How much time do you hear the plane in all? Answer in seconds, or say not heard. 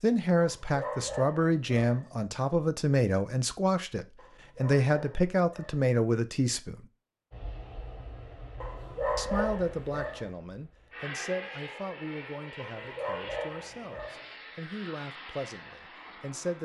9 s.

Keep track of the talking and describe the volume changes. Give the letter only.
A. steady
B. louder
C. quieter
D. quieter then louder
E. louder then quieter
C.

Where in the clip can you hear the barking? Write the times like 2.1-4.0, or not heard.
0.3-2.1, 4.2-5.8, 8.6-10.3, 12.6-14.3.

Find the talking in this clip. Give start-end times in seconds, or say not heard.
0.0-6.8, 9.2-16.6.